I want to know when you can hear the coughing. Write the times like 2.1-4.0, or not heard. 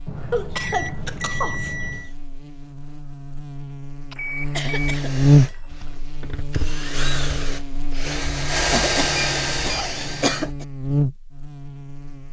0.3-1.8, 4.1-5.9, 8.7-10.7.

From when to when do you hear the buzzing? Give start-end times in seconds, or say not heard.
0.0-12.2.